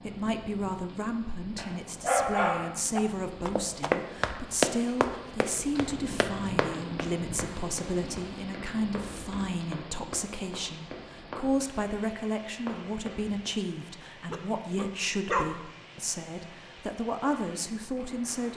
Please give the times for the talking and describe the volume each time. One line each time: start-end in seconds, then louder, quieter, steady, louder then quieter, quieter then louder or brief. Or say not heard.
0.0-18.5 steady.